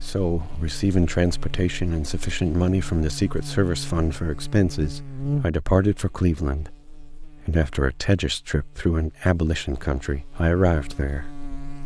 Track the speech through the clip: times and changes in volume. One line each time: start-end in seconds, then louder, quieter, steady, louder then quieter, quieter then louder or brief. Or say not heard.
0.0-11.3 steady.